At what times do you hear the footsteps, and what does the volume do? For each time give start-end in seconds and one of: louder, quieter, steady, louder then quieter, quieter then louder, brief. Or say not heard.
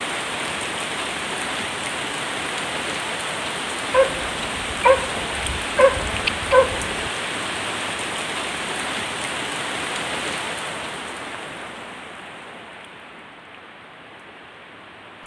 not heard.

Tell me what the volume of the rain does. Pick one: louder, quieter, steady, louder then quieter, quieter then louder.
quieter.